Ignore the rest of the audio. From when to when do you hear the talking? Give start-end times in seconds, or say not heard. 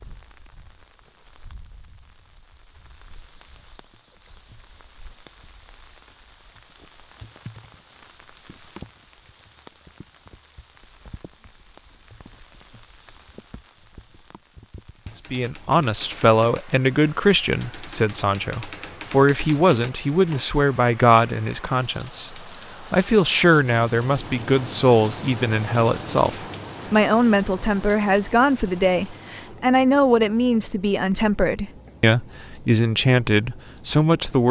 15.3-34.4.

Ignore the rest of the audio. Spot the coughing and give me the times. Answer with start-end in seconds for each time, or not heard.
not heard.